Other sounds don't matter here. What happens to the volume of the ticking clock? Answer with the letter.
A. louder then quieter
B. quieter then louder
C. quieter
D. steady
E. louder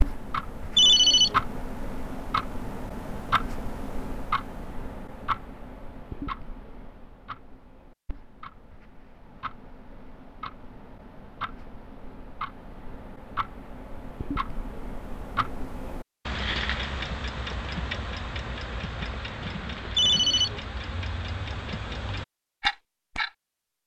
B.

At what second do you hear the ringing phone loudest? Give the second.
1 s.